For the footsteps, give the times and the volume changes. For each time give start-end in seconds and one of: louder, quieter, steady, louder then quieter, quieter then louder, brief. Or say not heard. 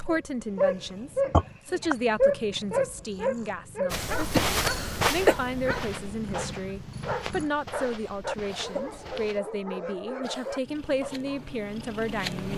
3.9-9.4 quieter.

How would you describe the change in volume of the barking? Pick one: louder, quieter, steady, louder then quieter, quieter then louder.
quieter.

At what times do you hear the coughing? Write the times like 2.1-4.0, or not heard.
1.3-1.9, 4.3-5.3, 8.4-9.1, 10.2-10.6.